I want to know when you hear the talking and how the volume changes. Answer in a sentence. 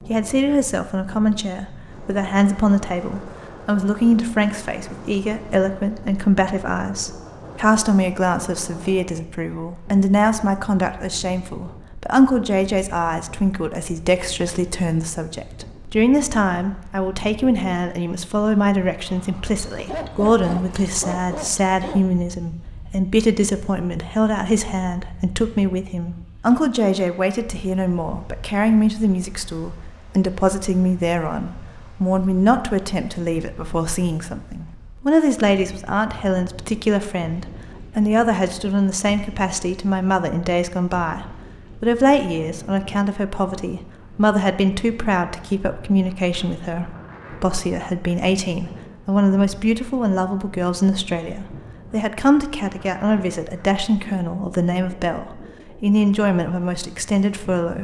You can hear the talking from 0.1 to 57.7 s, at a steady volume.